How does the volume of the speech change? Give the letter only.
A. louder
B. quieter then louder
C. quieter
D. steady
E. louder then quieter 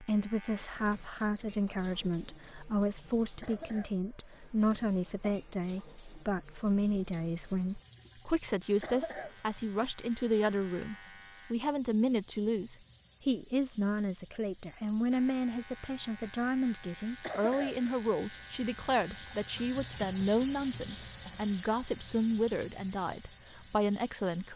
D.